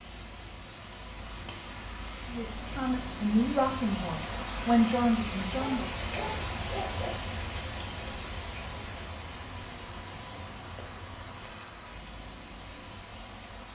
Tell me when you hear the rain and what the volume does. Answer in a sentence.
You can hear the rain from 0.0 to 13.6 s, getting louder then quieter.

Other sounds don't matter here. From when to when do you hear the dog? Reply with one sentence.
You can hear the dog from 5.6 to 7.2 s.